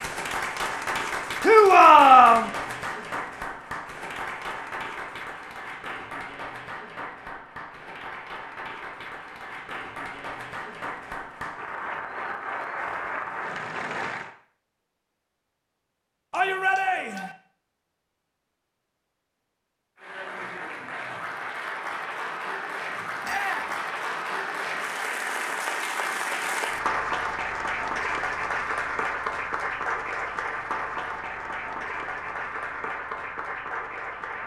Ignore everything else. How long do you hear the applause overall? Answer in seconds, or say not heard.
29 s.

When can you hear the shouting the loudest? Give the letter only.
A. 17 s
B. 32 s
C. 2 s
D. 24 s
C.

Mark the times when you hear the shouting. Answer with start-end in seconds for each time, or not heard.
1.4-2.5, 16.3-17.3, 23.2-23.8.